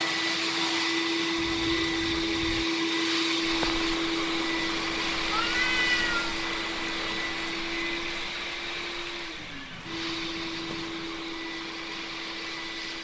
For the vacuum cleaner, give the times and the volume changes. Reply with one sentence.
You can hear the vacuum cleaner from 0.0 to 12.9 s, getting quieter.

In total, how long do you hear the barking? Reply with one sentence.
You can't hear the barking here.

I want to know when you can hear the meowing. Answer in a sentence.
You can hear the meowing from 1.4 to 2.6 s, from 5.3 to 6.4 s and from 9.3 to 11.1 s.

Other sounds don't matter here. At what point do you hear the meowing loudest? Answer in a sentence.
The volume of the meowing peaks at 6 seconds.